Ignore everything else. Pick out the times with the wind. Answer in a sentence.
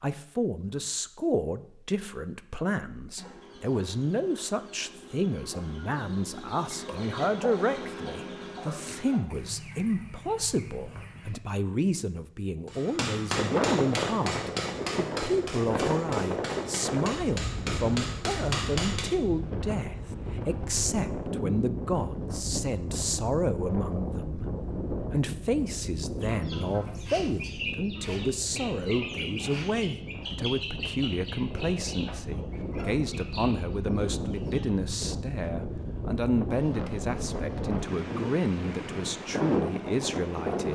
The wind can be heard from 13.3 to 40.7 s.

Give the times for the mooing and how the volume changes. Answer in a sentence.
You can't hear the mooing here.